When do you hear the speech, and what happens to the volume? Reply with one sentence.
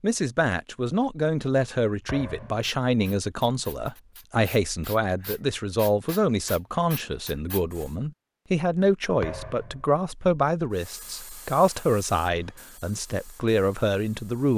The speech can be heard from 0.0 to 14.5 s, at a steady volume.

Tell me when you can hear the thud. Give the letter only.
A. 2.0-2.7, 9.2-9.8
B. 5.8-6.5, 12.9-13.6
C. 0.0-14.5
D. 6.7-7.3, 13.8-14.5
A.